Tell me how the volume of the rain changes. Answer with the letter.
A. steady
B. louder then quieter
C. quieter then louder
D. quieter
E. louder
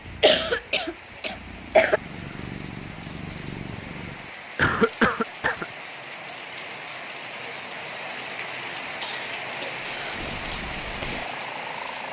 E.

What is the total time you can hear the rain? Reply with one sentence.
You can hear the rain for 12 seconds altogether.